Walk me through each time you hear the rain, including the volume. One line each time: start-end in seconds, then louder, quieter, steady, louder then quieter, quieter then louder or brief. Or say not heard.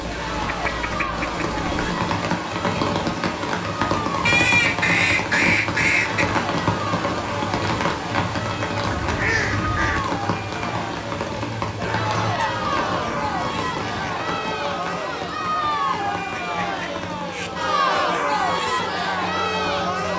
0.0-20.1 quieter.